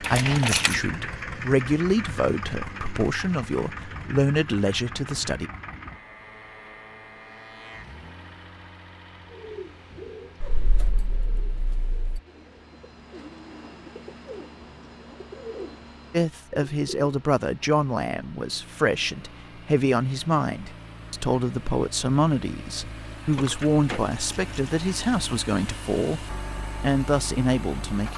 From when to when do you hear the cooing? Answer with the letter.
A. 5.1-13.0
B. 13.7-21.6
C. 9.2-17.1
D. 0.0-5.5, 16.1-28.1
C.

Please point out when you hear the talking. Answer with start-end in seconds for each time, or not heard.
0.0-5.5, 16.1-28.1.